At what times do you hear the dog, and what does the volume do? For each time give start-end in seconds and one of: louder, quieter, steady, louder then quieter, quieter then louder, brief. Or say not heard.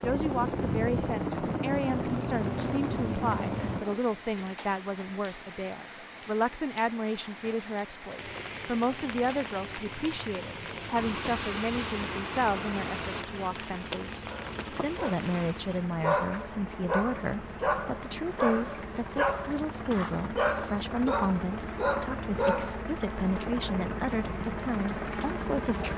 14.3-23.5 steady.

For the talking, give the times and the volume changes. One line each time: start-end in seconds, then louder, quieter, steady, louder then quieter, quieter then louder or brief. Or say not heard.
0.0-25.9 steady.